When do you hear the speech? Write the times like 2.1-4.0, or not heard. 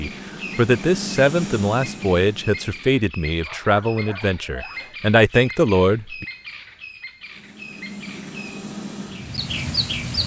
0.0-6.2.